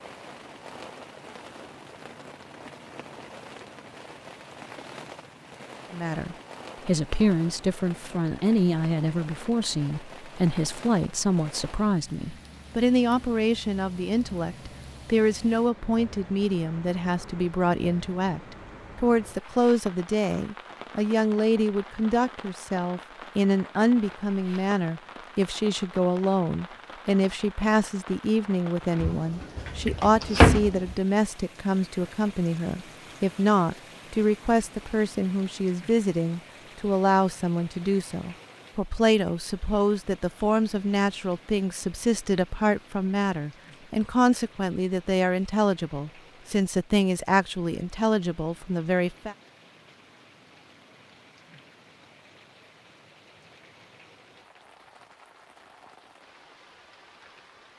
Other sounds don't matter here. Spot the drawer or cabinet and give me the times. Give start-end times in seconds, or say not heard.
29.0-30.9.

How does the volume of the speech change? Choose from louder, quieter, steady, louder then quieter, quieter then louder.
steady.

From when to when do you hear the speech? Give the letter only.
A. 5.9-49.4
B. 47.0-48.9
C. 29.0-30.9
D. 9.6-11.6
A.